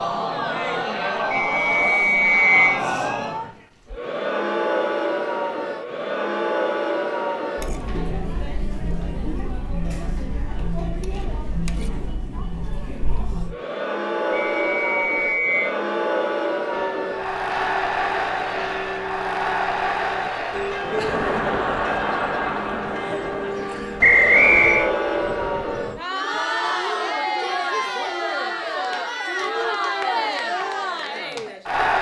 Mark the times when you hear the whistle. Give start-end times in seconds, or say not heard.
1.3-2.8, 14.3-15.8, 24.0-24.9.